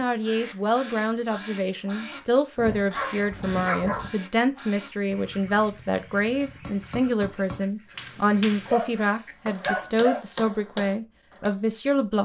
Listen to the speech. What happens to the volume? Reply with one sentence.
The loudness of the speech stays about the same.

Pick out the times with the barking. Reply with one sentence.
The barking can be heard from 2.5 to 4.1 s and from 8.7 to 10.2 s.